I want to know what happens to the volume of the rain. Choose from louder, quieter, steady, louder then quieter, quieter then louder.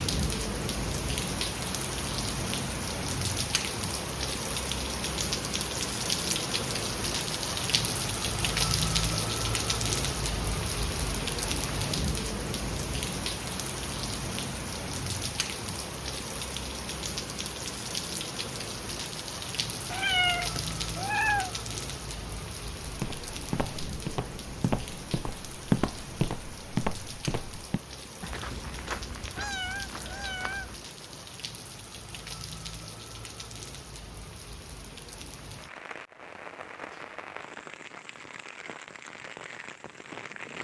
quieter.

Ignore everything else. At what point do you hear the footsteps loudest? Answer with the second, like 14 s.
26 s.